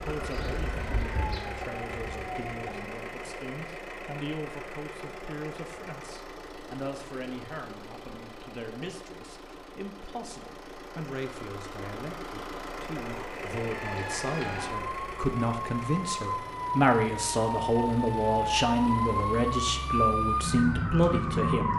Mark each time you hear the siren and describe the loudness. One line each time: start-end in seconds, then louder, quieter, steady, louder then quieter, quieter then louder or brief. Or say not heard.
0.0-3.0 brief
13.7-21.7 louder.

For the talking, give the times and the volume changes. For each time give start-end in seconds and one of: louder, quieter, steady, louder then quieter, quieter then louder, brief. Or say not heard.
0.0-21.7 louder.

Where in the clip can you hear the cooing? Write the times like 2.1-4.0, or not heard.
not heard.